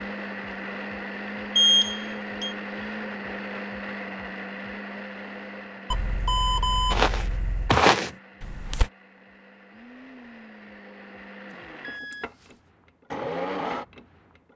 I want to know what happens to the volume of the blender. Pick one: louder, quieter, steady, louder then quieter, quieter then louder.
quieter then louder.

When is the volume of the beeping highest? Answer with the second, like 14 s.
2 s.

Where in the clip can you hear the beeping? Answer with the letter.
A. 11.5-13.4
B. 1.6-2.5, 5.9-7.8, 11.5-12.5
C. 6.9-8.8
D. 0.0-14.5
B.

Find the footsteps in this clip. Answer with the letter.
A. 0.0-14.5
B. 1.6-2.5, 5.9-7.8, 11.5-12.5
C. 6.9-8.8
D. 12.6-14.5
C.